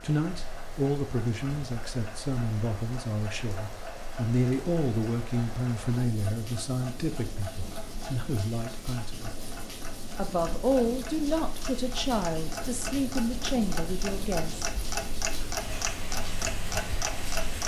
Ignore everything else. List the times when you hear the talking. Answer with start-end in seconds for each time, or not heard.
0.0-9.3, 10.2-14.7.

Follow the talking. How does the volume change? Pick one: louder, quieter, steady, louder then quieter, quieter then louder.
steady.